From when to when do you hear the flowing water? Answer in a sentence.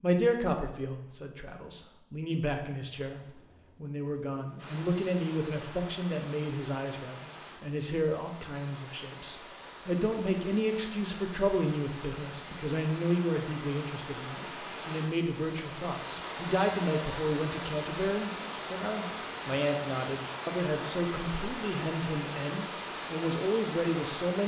The flowing water can be heard from 4.5 to 24.4 s.